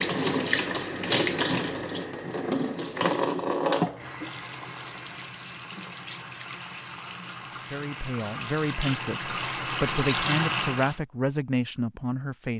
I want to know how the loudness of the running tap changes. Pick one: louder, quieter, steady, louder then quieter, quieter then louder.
quieter then louder.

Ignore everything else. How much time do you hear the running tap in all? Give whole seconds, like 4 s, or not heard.
11 s.